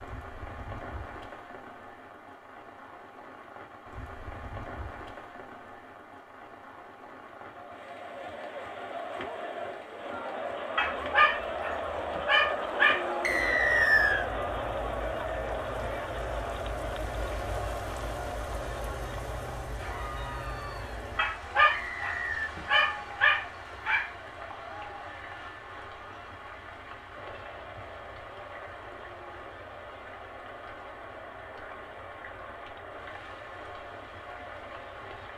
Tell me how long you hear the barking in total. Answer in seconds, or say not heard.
5 s.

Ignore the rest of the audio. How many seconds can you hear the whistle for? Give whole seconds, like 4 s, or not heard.
2 s.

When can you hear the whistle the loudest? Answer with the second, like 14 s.
14 s.